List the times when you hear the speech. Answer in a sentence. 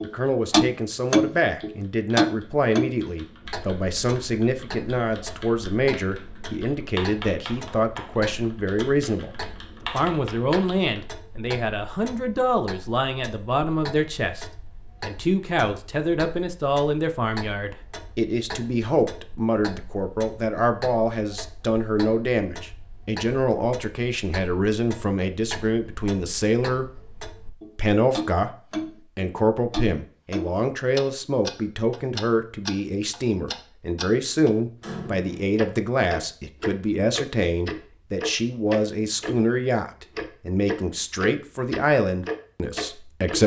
You can hear the speech from 0.0 to 26.9 s and from 27.8 to 43.4 s.